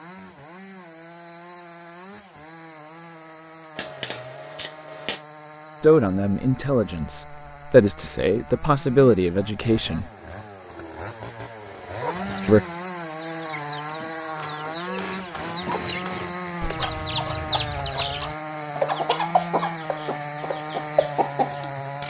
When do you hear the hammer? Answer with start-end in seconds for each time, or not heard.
3.8-5.2, 13.8-16.3.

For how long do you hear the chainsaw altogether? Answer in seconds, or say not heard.
22 s.